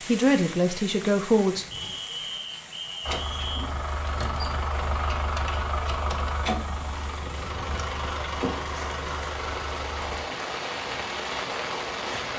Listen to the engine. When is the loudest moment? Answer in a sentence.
The volume of the engine peaks at 6 seconds.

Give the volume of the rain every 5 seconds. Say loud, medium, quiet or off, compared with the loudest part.
medium, medium, loud.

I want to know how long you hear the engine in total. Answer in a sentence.
You can hear the engine for 7 seconds altogether.